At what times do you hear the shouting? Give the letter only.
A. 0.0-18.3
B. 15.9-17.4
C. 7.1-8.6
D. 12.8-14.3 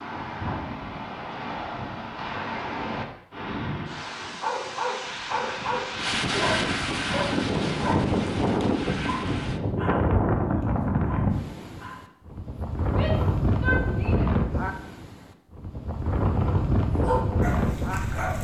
D.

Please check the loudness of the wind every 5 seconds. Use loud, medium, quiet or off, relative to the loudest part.
medium, loud, loud, loud.